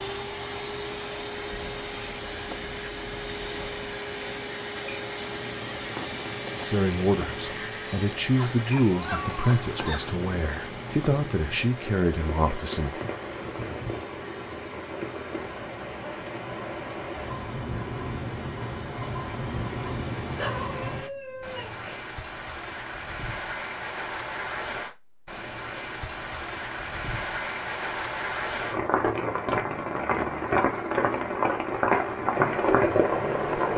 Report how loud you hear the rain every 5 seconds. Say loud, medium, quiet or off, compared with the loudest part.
quiet, quiet, quiet, medium, medium, medium, loud.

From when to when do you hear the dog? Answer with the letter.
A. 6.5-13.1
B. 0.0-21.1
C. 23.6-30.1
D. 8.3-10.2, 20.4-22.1
D.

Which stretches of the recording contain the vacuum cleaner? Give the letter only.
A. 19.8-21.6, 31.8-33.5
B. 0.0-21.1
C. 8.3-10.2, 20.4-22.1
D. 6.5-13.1
B.